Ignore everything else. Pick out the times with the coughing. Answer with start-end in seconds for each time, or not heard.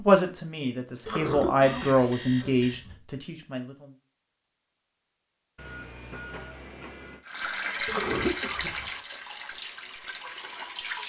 1.1-3.0, 7.8-8.9.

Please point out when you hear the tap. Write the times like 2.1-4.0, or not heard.
7.2-11.0.